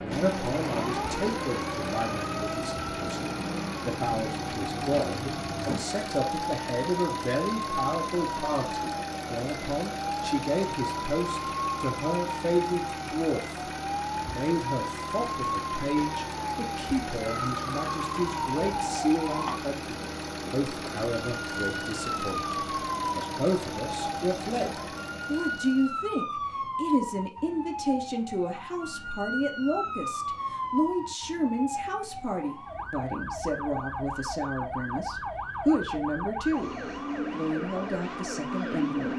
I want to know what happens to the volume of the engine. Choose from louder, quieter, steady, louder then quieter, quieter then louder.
steady.